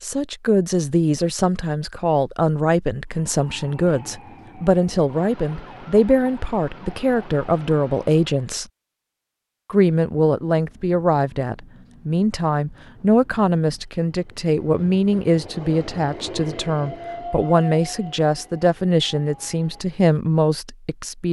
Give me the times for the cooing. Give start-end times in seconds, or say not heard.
not heard.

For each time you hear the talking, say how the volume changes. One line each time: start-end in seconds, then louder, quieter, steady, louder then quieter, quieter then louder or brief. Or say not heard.
0.0-8.7 steady
9.7-21.2 steady.